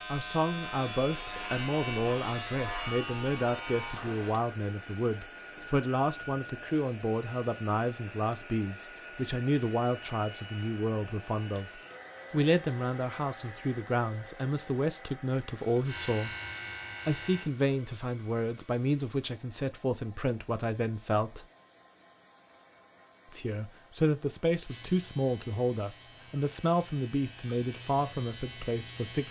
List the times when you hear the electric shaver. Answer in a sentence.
You can hear the electric shaver from 0.0 to 4.4 s, from 15.8 to 17.5 s and from 24.6 to 29.2 s.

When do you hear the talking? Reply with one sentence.
You can hear the talking from 0.1 to 16.3 s, from 17.1 to 21.4 s and from 23.3 to 29.2 s.